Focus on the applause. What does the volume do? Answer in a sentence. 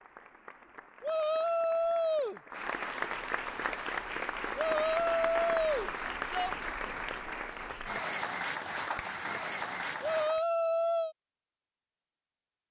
The volume of the applause goes up.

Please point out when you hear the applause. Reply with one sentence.
The applause can be heard from 0.0 to 10.4 s.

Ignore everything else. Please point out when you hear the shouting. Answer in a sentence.
You can hear the shouting from 1.0 to 2.4 s, from 4.5 to 6.5 s and from 10.0 to 11.2 s.